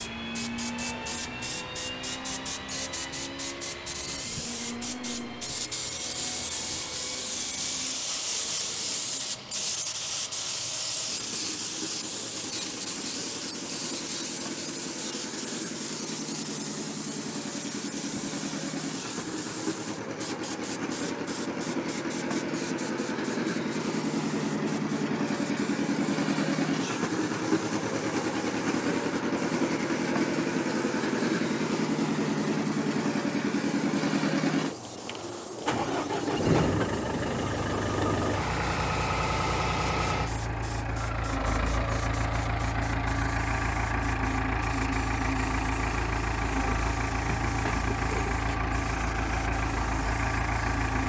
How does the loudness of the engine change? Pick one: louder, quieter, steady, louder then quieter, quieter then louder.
louder.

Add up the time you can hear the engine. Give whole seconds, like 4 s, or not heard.
51 s.